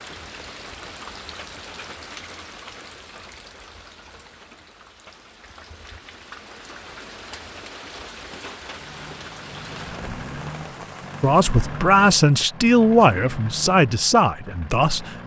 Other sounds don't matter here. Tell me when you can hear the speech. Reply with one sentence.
You can hear the speech from 11.2 to 15.2 s.